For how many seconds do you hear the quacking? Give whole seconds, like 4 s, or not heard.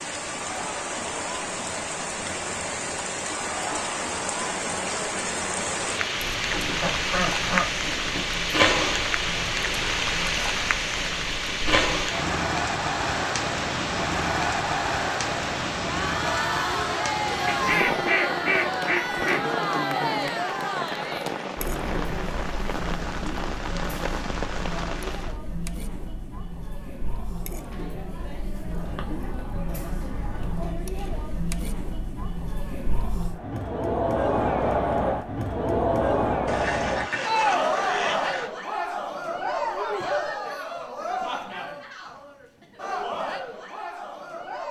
8 s.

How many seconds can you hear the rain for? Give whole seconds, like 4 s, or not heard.
25 s.